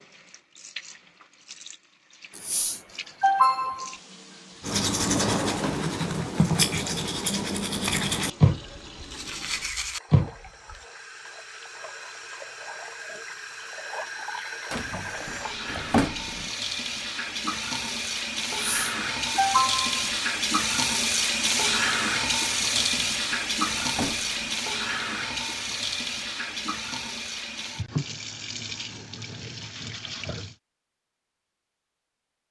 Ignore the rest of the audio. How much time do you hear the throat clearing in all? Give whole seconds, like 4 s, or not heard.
3 s.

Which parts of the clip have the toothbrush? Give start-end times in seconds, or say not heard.
4.6-10.8.